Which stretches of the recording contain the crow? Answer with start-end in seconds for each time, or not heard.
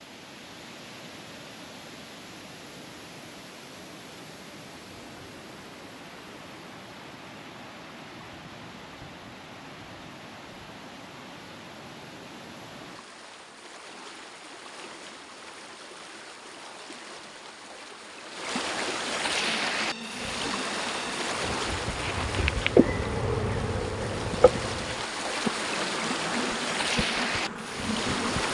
not heard.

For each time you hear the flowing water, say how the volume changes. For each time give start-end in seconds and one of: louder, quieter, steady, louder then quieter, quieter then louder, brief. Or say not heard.
0.0-28.4 louder.